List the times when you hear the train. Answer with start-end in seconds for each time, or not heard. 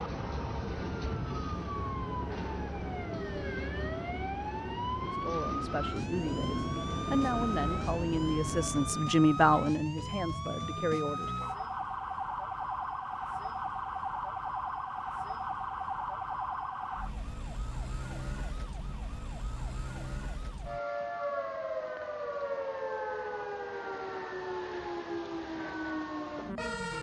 0.0-9.1.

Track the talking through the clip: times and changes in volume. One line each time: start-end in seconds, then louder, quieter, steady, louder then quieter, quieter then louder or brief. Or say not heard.
5.1-11.3 louder then quieter.